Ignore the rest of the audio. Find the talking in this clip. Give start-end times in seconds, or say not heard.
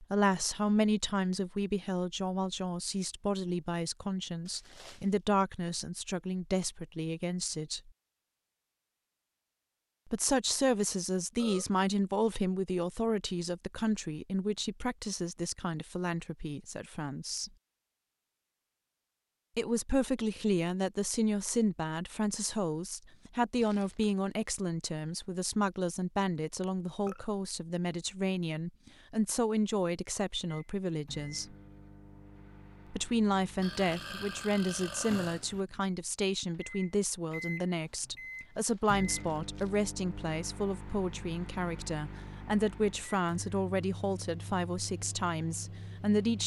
0.0-7.9, 10.1-17.5, 19.6-31.6, 32.9-46.4.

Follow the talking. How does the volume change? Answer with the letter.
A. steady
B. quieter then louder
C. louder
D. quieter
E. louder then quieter
A.